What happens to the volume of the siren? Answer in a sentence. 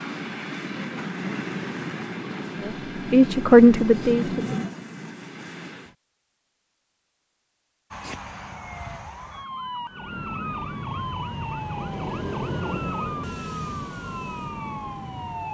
The volume of the siren stays about the same.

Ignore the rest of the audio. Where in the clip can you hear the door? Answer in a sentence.
The door can't be heard in this clip.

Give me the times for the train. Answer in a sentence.
The train can be heard from 0.0 to 6.0 s and from 9.8 to 15.4 s.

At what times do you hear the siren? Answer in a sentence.
You can hear the siren from 7.9 to 15.4 s.